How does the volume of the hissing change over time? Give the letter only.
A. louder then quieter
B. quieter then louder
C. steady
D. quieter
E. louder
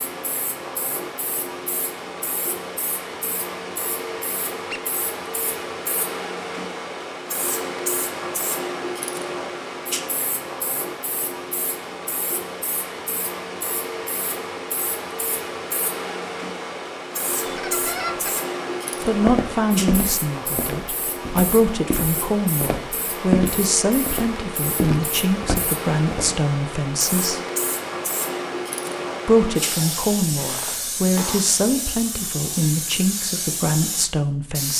C.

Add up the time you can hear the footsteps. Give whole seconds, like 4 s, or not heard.
7 s.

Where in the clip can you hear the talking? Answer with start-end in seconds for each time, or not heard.
19.1-27.4, 29.2-34.7.